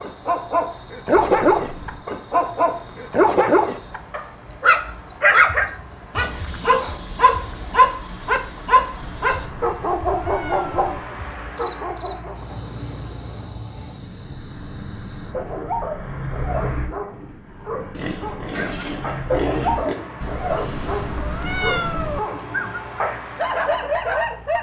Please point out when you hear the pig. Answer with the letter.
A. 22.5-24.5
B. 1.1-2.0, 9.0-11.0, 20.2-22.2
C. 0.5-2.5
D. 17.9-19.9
D.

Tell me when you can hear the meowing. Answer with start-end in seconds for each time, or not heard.
1.1-2.0, 9.0-11.0, 20.2-22.2.